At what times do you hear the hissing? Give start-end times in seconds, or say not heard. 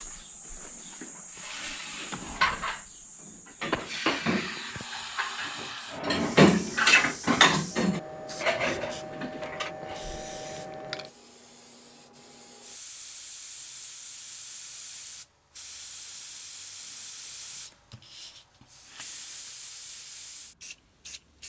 0.0-21.4.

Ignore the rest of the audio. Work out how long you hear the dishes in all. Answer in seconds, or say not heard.
8 s.